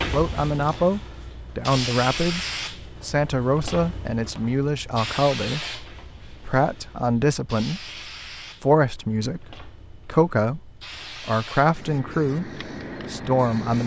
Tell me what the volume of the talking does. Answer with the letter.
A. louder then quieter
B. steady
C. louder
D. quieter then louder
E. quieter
B.